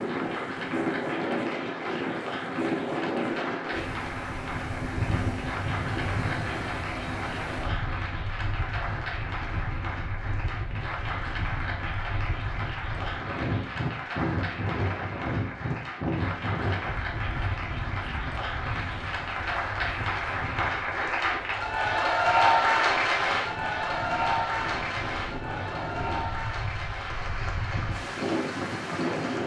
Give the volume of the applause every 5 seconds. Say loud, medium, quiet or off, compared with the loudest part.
medium, medium, medium, medium, loud, medium.